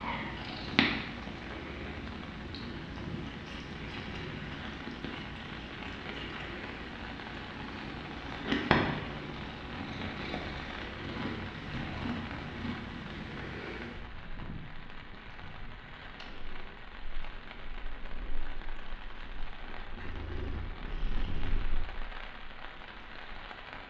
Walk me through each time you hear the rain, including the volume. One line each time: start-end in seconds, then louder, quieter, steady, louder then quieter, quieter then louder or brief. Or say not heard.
0.2-23.8 steady.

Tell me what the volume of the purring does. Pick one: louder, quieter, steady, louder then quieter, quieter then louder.
quieter then louder.